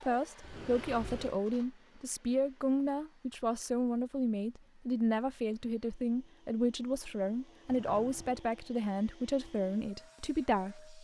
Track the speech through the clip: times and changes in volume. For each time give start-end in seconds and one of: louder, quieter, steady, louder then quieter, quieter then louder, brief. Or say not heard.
0.0-10.9 steady.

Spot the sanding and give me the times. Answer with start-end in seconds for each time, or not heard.
not heard.